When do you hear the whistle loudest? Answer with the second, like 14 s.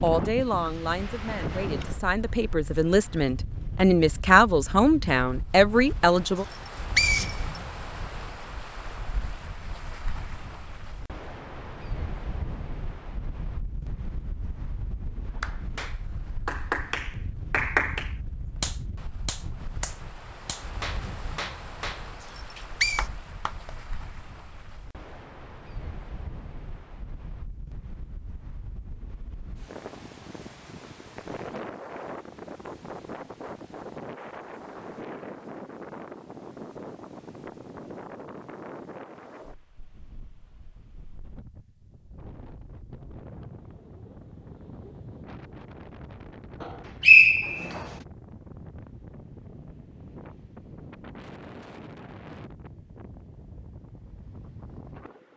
47 s.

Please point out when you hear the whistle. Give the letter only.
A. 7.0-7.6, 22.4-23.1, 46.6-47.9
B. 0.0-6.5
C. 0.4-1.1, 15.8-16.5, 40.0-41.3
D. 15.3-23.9
A.